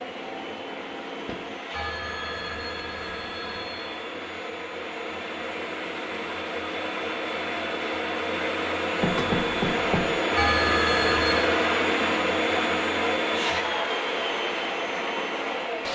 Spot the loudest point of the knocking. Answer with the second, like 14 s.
9 s.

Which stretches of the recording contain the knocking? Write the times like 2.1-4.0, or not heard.
1.2-1.8, 9.0-10.2.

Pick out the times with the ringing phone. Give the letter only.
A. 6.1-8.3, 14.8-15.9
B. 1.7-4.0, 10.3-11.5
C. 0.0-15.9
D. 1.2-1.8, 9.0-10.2
B.